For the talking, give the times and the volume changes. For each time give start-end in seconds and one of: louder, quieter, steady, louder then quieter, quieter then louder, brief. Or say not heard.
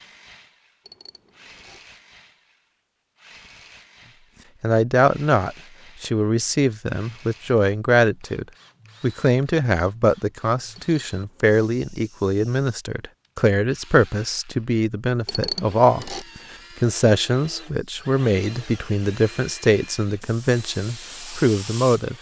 4.6-22.1 steady.